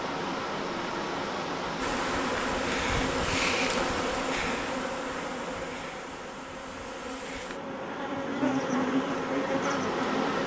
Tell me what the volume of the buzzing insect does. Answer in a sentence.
The loudness of the buzzing insect goes down, then up.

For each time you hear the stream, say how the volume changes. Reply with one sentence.
The stream can be heard from 0.0 to 10.4 s, getting quieter then louder.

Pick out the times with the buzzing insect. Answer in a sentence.
The buzzing insect can be heard from 1.8 to 10.4 s.